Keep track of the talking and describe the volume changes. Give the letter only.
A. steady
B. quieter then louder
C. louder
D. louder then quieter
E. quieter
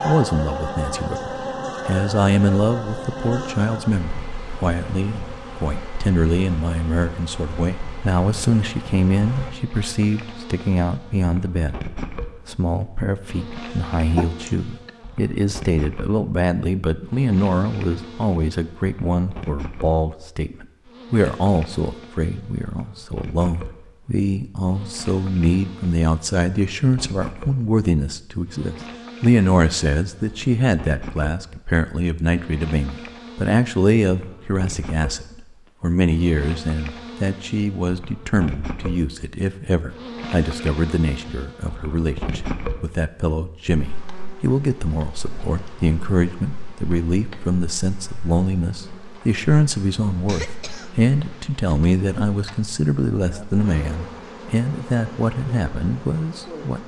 A.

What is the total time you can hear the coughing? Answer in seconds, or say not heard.
2 s.